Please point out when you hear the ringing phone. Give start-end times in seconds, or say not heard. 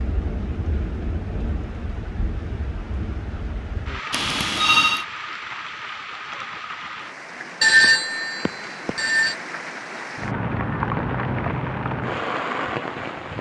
4.1-5.0, 7.6-9.3.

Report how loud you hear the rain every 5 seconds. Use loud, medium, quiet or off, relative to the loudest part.
medium, medium, loud.